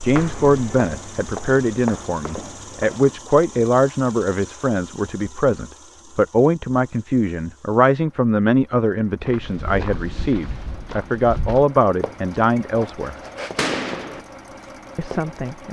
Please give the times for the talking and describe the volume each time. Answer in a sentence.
The talking can be heard from 0.0 to 13.2 s, at a steady volume; and briefly from 14.9 to 15.6 s.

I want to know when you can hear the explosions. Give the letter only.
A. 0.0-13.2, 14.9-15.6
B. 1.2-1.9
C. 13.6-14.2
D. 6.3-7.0
C.